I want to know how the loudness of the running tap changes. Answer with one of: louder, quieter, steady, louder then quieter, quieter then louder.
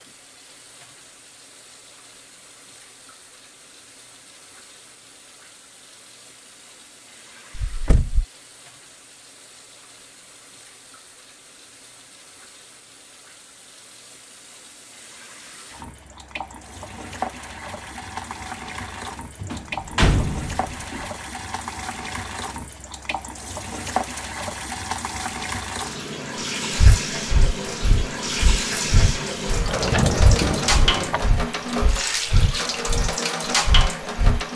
louder.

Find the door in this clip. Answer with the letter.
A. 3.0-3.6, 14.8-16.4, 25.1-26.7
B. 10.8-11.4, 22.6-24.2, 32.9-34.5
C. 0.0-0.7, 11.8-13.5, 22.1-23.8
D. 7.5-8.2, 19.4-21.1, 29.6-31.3
D.